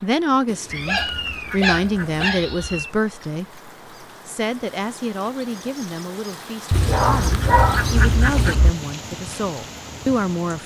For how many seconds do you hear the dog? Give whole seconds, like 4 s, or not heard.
4 s.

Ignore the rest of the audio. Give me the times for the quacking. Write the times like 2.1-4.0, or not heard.
0.5-2.3, 6.7-8.6.